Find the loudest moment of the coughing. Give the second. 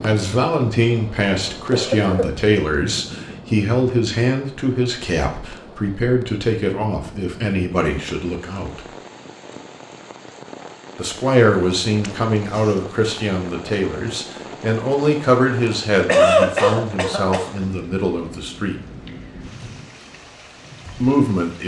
16 s.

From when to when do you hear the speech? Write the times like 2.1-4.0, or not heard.
0.0-8.8, 10.9-18.8, 21.0-21.6.